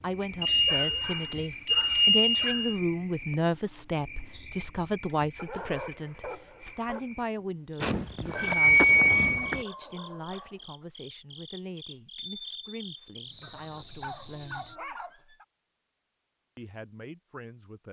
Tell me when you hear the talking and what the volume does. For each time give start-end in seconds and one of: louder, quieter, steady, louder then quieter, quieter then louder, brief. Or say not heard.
0.0-14.8 quieter
16.6-17.8 brief.